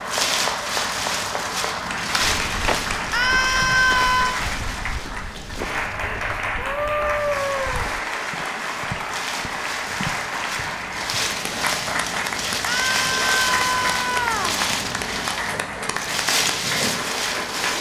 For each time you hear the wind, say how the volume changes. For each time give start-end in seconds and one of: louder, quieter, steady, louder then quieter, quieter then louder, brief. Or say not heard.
0.0-17.7 quieter then louder.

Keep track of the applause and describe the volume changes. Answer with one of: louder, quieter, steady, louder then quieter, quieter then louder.
steady.